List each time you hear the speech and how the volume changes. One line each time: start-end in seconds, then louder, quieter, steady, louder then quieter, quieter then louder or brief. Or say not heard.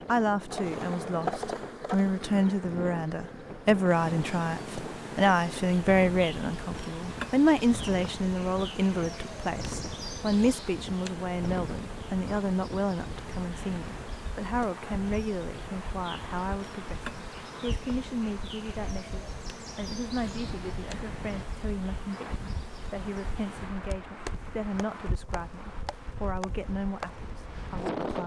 0.1-28.2 quieter.